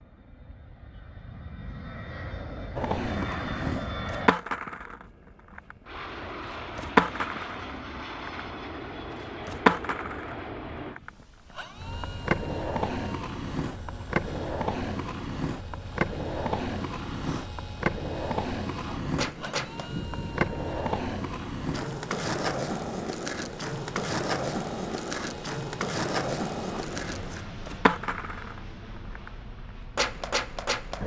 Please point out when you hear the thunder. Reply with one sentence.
The thunder can be heard from 19.1 to 20.6 s.